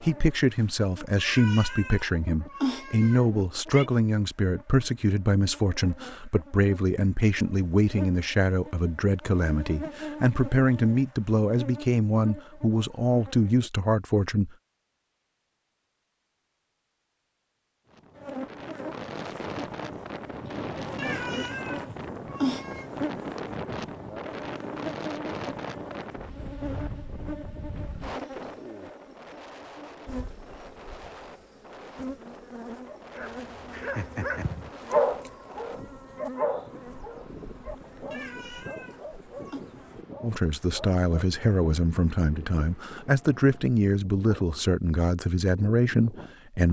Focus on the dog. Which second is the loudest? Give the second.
35 s.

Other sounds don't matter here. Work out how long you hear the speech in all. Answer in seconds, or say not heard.
21 s.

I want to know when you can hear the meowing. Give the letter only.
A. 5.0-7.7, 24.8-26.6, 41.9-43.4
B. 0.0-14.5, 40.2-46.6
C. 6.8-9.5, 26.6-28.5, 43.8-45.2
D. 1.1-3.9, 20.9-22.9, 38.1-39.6
D.